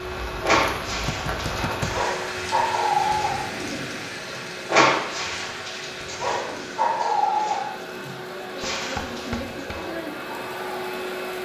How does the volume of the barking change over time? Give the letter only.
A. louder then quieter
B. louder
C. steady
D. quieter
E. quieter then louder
A.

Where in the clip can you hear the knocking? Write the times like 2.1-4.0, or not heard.
1.1-2.0, 8.6-9.8.